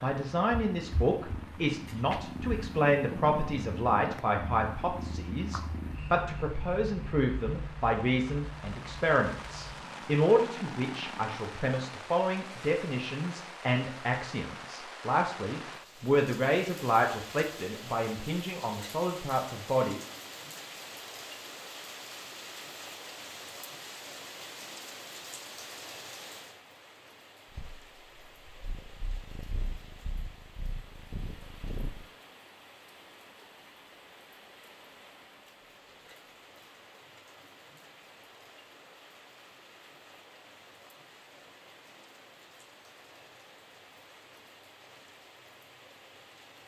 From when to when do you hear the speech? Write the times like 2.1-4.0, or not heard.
0.0-20.0.